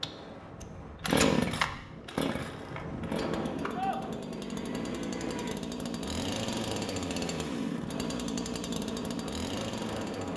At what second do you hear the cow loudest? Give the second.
4 s.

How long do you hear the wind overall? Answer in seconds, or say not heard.
10 s.